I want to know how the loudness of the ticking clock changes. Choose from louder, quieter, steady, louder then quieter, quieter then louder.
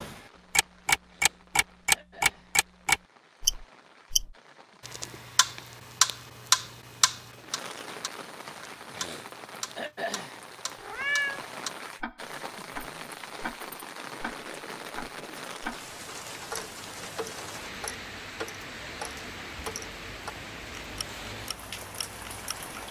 quieter.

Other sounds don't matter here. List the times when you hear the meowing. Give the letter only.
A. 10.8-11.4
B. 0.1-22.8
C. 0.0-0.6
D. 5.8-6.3
A.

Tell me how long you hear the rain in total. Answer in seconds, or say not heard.
23 s.